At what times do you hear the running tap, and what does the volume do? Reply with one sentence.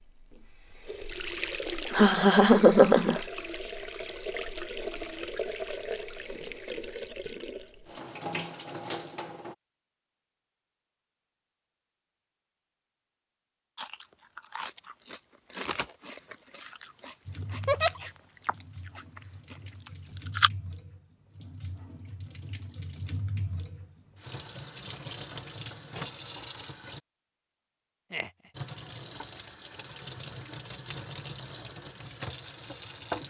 The running tap can be heard from 0.0 to 9.6 s, at a steady volume; from 17.2 to 27.0 s, getting louder; and from 28.5 to 33.2 s, at a steady volume.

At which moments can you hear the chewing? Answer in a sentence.
You can hear the chewing from 13.8 to 20.5 s.